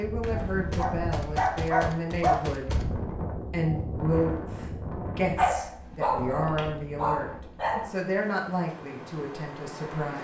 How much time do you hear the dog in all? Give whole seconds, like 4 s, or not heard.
4 s.